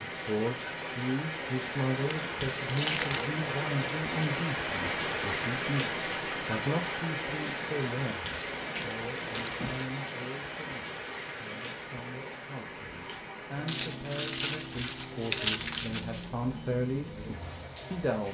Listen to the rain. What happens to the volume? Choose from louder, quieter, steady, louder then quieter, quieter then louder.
quieter.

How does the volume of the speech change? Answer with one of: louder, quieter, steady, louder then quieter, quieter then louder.
quieter then louder.